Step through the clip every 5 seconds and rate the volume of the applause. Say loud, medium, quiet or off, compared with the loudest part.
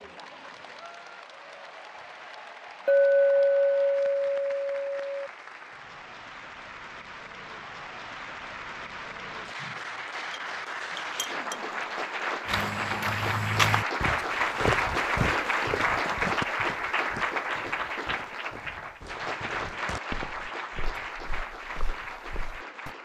quiet, medium, loud, loud, medium.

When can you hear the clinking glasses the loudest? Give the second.
3 s.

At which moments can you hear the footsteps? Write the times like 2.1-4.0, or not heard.
12.4-22.9.